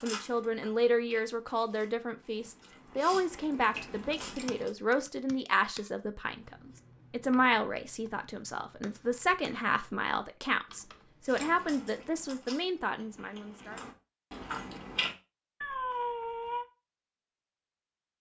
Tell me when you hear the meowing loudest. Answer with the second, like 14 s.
16 s.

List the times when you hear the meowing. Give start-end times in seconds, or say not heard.
3.7-4.5, 15.6-16.6.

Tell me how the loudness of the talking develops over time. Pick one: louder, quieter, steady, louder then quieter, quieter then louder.
steady.